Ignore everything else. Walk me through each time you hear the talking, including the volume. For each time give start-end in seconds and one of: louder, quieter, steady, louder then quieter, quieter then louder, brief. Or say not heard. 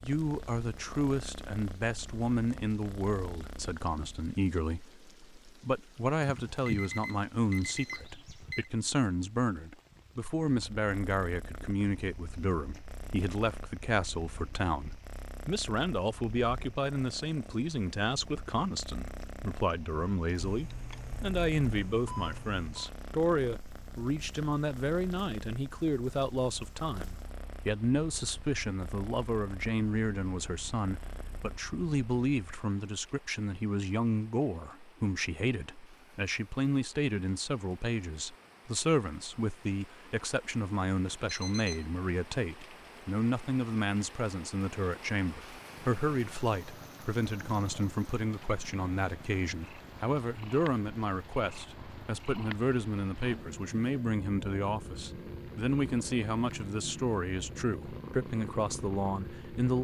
0.0-59.7 steady.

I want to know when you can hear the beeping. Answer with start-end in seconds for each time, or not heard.
6.2-8.7, 20.4-22.9, 41.0-41.9.